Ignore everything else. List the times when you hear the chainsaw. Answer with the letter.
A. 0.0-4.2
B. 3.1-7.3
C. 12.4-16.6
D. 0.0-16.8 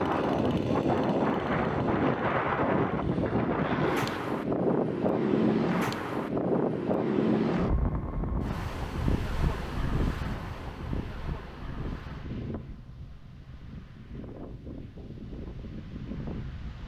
A.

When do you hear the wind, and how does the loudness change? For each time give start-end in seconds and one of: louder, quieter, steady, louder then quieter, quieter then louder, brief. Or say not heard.
0.0-16.8 quieter.